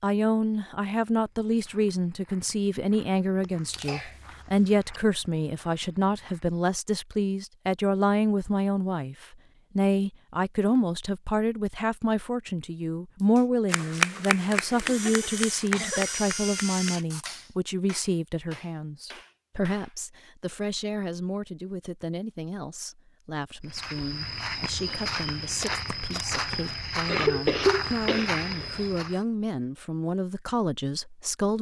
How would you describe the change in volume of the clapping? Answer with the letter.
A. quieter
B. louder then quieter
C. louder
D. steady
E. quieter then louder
A.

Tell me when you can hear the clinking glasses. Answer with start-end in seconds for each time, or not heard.
not heard.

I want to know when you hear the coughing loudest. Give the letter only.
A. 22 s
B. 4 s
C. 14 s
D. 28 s
D.